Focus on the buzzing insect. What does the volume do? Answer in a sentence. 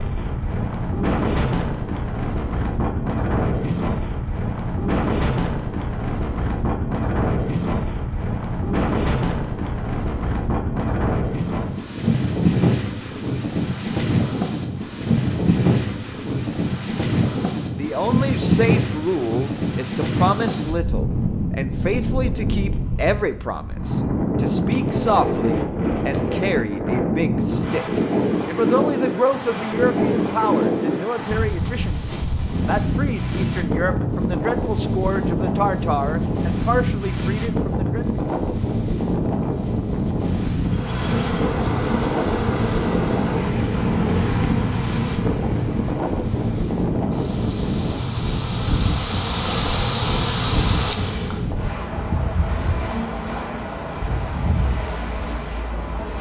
The volume of the buzzing insect goes down, then up.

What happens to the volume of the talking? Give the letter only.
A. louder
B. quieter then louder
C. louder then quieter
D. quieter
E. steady
E.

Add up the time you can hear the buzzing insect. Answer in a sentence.
The buzzing insect can be heard for 11 seconds in total.